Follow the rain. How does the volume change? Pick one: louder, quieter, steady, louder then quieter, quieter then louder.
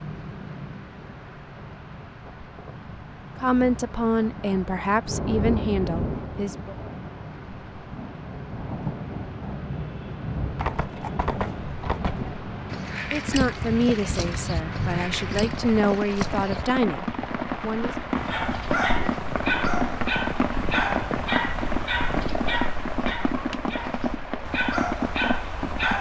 louder.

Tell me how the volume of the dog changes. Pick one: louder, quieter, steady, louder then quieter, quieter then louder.
quieter then louder.